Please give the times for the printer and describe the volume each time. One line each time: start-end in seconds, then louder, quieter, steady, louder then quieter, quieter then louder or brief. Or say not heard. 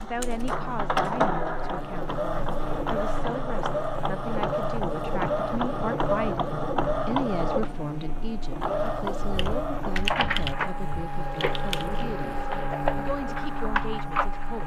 0.0-14.6 steady.